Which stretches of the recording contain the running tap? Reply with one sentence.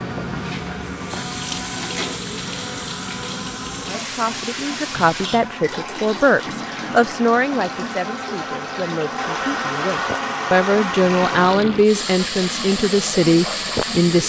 You can hear the running tap from 0.0 to 14.2 s.